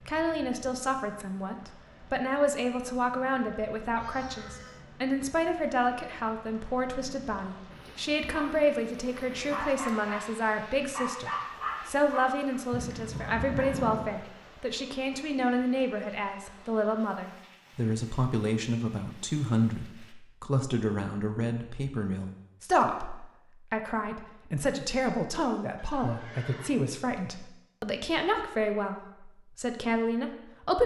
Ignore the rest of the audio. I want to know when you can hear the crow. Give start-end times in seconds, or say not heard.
not heard.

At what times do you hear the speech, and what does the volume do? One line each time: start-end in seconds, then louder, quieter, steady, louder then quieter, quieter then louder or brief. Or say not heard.
0.1-30.8 steady.